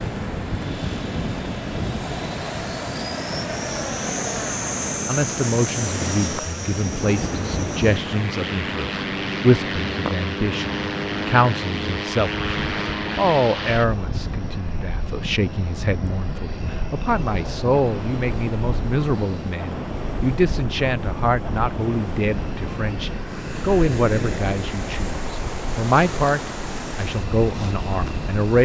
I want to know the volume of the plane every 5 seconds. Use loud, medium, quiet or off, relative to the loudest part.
loud, loud, loud, medium, medium, medium.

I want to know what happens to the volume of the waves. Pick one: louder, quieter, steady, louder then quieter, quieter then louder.
steady.